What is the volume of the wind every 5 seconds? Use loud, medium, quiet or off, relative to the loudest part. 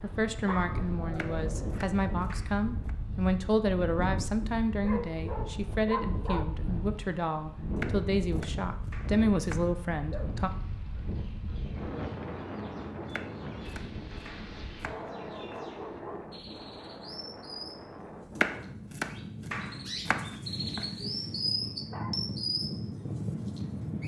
loud, loud, loud, medium, loud.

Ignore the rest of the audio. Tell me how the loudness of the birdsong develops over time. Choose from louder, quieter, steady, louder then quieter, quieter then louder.
louder.